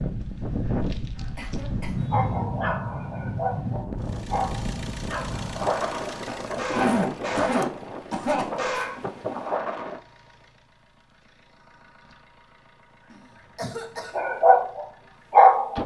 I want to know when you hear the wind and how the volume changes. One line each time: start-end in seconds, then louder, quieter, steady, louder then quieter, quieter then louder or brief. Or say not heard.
0.0-10.0 steady.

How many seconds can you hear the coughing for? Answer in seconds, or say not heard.
4 s.